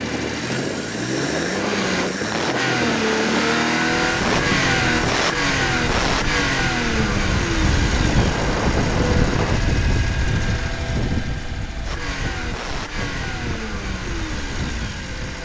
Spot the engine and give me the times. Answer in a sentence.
You can hear the engine from 0.0 to 15.4 s.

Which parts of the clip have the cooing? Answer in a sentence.
The cooing can't be heard in this clip.